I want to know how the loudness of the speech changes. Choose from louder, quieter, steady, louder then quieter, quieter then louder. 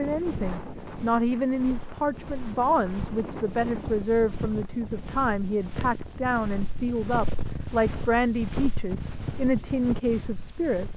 steady.